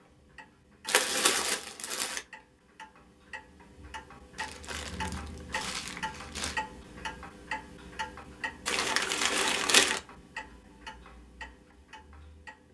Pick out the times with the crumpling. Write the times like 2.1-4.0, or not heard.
0.8-2.2, 4.3-6.6, 8.7-10.0.